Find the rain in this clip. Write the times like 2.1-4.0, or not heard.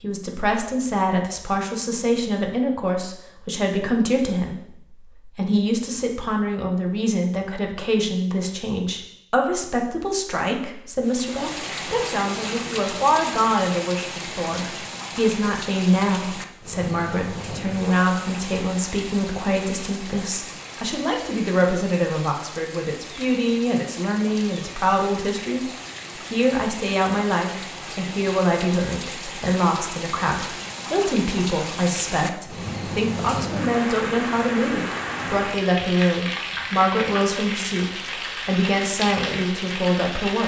11.0-40.4.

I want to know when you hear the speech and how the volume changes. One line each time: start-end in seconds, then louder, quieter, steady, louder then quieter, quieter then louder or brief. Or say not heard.
0.0-40.4 steady.